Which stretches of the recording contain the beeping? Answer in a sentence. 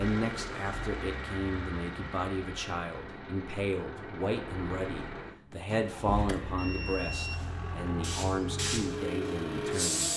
You can hear the beeping from 6.5 to 7.4 s.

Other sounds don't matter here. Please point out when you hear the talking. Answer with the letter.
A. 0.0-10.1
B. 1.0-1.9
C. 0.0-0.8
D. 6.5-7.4
A.